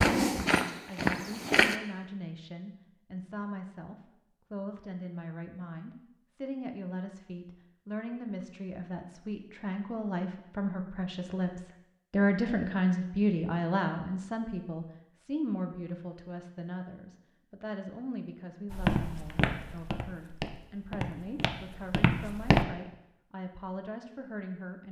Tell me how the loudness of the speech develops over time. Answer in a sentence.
The loudness of the speech goes up, then down.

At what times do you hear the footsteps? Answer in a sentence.
You can hear the footsteps from 0.0 to 1.8 s and from 18.7 to 22.6 s.